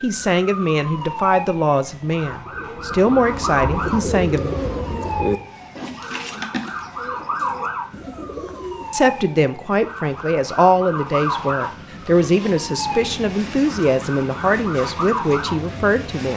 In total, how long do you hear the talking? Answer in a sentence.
The talking can be heard for 12 seconds in total.